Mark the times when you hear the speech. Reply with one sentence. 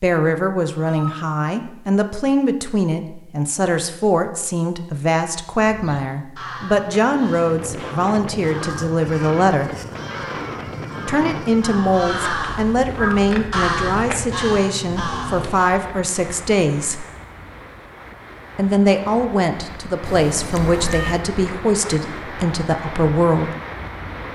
The speech can be heard from 0.0 to 9.7 s, from 11.1 to 17.1 s and from 18.6 to 23.5 s.